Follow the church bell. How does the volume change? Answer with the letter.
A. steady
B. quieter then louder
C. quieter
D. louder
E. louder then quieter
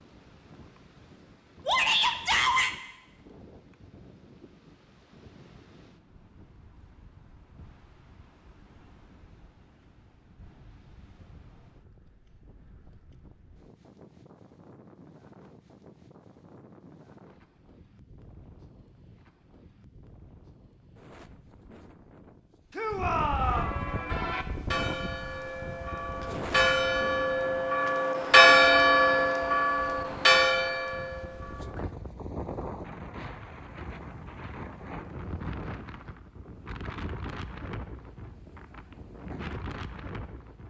E.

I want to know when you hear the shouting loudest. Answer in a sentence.
The loudest moment of the shouting is at 2 seconds.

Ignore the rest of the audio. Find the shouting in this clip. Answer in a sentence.
You can hear the shouting from 1.6 to 2.7 s and from 22.7 to 23.8 s.